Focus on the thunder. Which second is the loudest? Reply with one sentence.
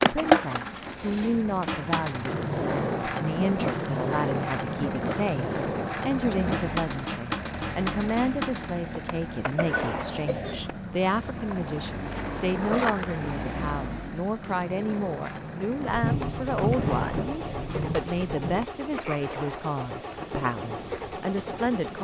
The volume of the thunder peaks at 17 seconds.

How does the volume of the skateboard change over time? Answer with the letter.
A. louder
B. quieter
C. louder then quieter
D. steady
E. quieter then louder
B.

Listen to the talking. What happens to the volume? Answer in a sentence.
The volume of the talking stays about the same.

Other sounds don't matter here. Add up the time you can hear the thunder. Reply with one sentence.
The thunder can be heard for 3 seconds in total.